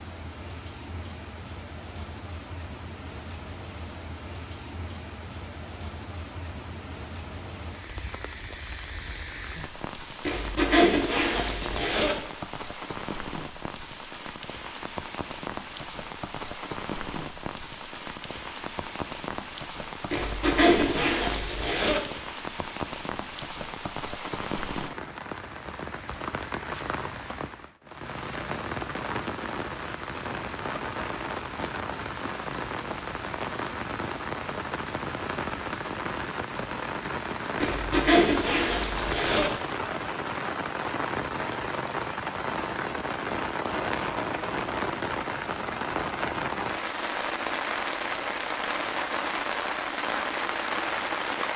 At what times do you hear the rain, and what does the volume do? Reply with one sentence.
You can hear the rain from 0.0 to 51.5 s, getting louder.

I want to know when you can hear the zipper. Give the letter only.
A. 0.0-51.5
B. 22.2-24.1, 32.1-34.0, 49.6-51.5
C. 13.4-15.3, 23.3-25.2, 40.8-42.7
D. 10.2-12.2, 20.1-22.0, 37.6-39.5
D.